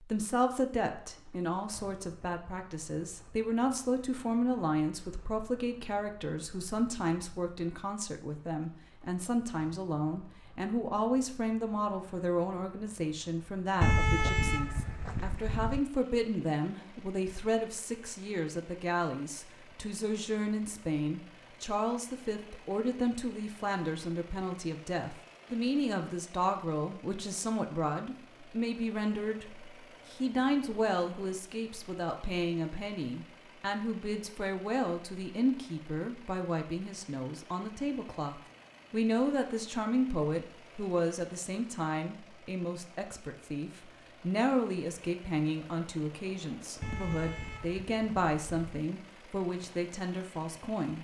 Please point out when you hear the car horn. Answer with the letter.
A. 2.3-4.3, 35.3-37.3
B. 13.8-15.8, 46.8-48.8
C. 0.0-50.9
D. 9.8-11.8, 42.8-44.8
B.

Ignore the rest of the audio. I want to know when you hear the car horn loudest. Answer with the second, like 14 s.
14 s.